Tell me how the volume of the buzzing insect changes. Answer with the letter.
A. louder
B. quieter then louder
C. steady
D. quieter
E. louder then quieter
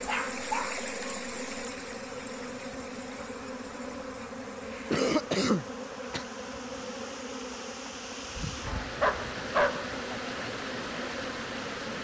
C.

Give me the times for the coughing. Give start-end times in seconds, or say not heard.
4.7-6.2.